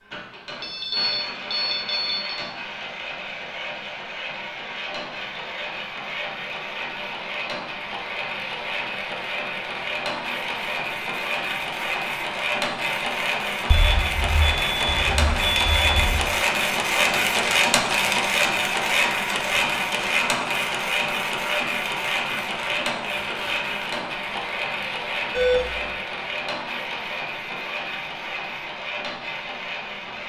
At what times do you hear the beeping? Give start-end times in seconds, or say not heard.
0.6-2.4, 13.7-16.3, 25.3-25.9.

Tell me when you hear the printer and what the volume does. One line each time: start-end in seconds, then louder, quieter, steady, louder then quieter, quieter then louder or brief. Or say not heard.
0.0-30.2 louder then quieter.